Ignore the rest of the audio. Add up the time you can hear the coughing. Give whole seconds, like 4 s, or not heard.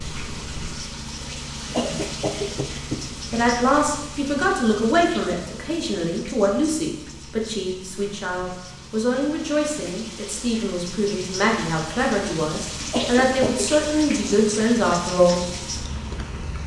2 s.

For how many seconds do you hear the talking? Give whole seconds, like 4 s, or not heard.
12 s.